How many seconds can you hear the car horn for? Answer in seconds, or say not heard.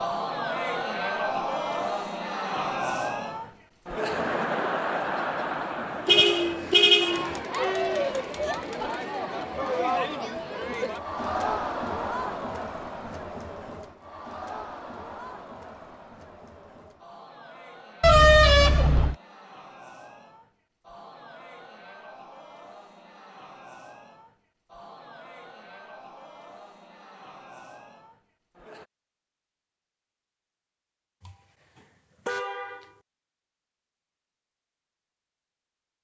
4 s.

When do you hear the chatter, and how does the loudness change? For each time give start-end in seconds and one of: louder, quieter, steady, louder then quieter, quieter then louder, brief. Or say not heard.
0.0-28.9 quieter.